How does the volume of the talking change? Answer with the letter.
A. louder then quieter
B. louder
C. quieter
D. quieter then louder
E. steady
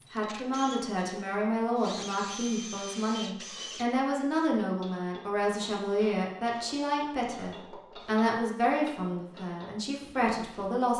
E.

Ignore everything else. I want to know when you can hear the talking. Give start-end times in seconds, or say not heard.
0.1-10.9.